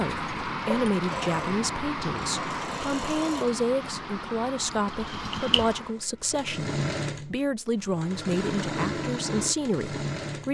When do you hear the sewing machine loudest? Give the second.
9 s.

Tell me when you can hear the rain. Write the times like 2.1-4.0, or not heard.
0.0-6.0.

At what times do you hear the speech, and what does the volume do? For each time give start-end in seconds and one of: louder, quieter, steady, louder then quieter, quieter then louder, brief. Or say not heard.
0.0-10.4 steady.